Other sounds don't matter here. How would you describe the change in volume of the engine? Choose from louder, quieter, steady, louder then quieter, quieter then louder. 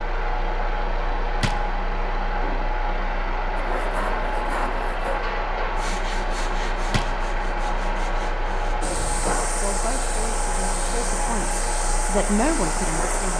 steady.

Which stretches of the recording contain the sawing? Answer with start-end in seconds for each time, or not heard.
3.6-8.8.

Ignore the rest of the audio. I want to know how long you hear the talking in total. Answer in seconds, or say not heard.
4 s.